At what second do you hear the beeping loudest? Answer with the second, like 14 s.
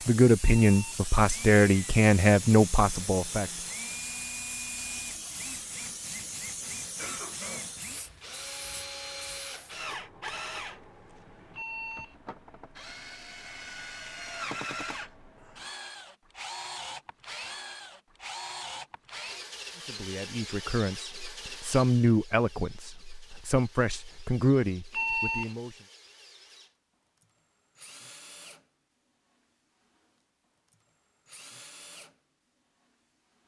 25 s.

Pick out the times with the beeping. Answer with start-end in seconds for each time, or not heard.
0.4-1.0, 11.6-12.2, 24.9-25.6.